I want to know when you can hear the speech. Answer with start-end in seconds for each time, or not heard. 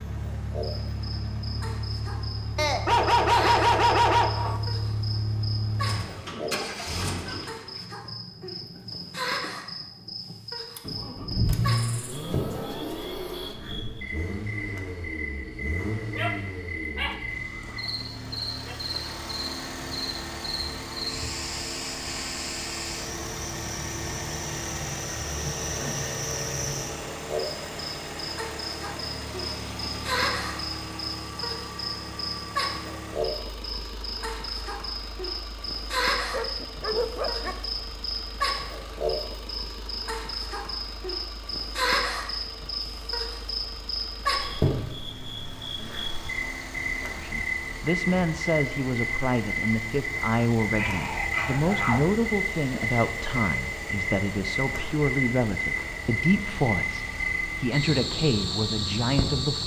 47.2-59.6.